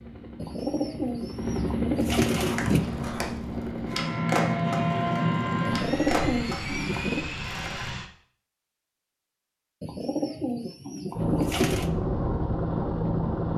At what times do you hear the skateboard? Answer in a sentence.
You can hear the skateboard from 2.4 to 7.9 s.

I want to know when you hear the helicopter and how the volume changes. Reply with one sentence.
You can hear the helicopter from 0.0 to 8.1 s, getting louder then quieter; and briefly from 11.1 to 13.5 s.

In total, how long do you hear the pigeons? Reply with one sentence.
You can hear the pigeons for 6 seconds altogether.